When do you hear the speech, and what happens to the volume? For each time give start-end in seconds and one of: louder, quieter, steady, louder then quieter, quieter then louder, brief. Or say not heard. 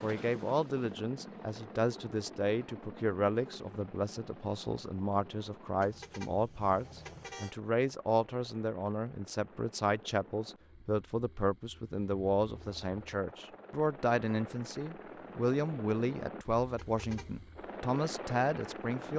0.0-19.1 steady.